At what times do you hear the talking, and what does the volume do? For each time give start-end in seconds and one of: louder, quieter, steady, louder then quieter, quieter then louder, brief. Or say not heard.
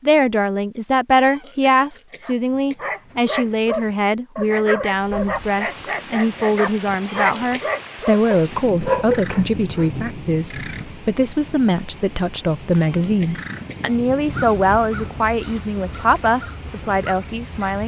0.0-17.8 steady.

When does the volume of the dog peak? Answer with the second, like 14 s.
9 s.